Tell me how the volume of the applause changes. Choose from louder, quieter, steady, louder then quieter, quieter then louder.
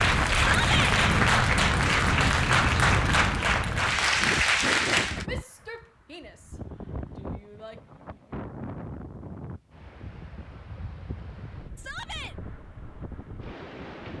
steady.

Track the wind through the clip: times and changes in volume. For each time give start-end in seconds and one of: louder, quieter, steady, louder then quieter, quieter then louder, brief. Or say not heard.
0.0-14.1 quieter.